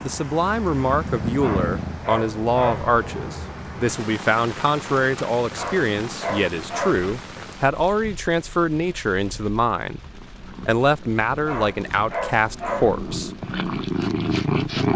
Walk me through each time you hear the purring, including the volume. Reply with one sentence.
The purring can be heard briefly from 0.0 to 2.0 s; and from 10.0 to 14.9 s, getting louder.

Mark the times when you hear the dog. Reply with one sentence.
The dog can be heard from 1.4 to 3.0 s, from 5.5 to 7.1 s and from 11.4 to 13.0 s.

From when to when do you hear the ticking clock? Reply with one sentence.
The ticking clock can't be heard in this clip.